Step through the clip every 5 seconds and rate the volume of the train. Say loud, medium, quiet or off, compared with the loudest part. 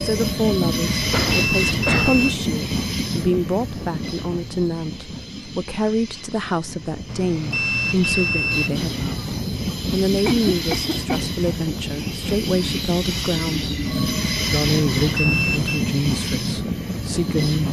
loud, medium, loud, loud.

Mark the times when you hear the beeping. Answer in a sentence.
The beeping can be heard from 0.9 to 2.4 s, from 7.0 to 9.1 s and from 14.9 to 15.8 s.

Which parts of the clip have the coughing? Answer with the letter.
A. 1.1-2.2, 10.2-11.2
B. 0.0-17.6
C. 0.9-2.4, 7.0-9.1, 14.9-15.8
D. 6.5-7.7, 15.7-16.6
A.